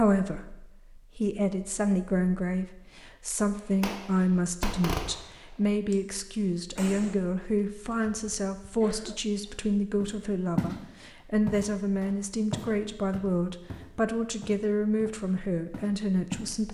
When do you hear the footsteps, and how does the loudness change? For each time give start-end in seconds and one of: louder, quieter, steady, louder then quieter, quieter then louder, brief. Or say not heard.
10.0-10.8 brief
11.4-16.5 quieter.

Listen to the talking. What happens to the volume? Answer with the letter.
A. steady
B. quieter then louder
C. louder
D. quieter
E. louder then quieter
A.